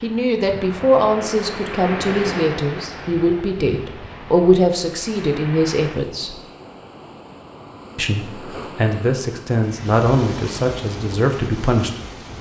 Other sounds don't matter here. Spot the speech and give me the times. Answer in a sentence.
You can hear the speech from 0.0 to 6.3 s and from 8.0 to 12.2 s.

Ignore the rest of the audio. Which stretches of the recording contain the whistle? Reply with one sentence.
The whistle can't be heard in this clip.